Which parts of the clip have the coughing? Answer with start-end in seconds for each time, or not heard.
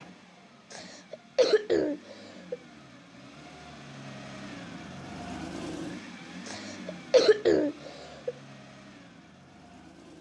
0.7-2.5, 6.5-8.3.